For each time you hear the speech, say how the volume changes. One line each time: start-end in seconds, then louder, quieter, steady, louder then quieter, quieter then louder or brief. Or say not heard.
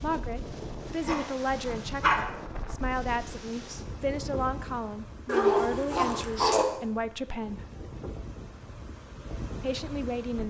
0.0-7.7 steady
9.6-10.4 brief.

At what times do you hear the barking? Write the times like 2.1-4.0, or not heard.
0.8-2.2, 5.2-6.7.